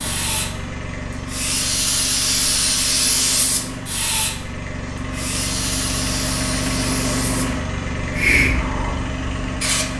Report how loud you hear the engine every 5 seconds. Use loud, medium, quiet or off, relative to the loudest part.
medium, loud.